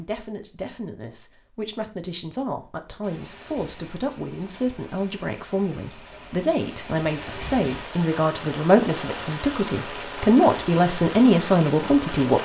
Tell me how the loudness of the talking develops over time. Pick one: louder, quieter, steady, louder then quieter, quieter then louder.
louder.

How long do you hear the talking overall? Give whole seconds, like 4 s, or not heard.
12 s.